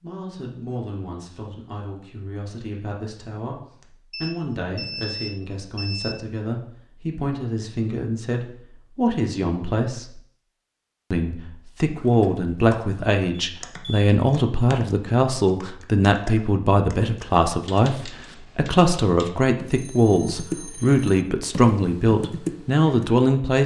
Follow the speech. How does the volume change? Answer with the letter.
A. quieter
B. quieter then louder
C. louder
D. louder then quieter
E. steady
C.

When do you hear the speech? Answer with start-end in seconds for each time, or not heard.
0.0-10.2, 11.1-23.6.